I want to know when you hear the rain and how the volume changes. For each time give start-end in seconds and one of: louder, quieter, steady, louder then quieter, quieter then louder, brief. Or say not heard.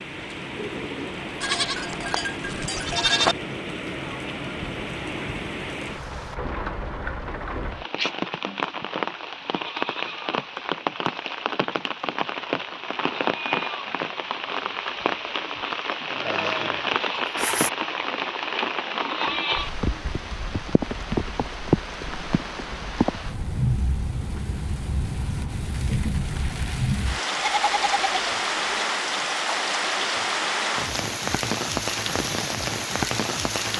0.0-33.7 louder.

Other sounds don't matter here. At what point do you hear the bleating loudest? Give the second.
3 s.